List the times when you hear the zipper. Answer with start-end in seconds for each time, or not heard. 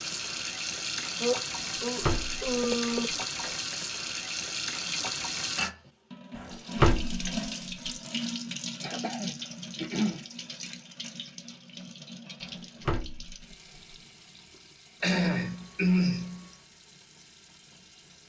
not heard.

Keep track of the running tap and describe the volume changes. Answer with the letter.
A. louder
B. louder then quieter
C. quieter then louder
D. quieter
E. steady
D.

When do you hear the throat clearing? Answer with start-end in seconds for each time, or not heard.
1.2-3.0, 8.8-10.2, 15.0-16.4.